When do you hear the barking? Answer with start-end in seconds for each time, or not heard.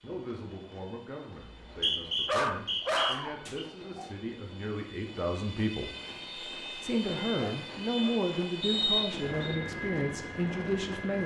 2.2-4.1, 7.4-8.2.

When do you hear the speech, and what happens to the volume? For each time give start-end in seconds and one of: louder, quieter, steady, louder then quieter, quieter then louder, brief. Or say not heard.
0.0-5.9 louder
6.8-11.2 steady.